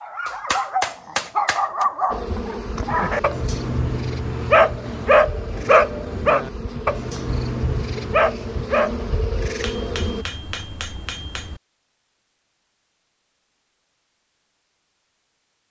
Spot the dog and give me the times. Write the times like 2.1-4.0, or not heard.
0.0-9.1.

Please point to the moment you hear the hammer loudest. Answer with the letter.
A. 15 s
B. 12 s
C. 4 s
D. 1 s
D.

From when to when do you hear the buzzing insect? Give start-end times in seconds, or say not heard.
2.1-10.2.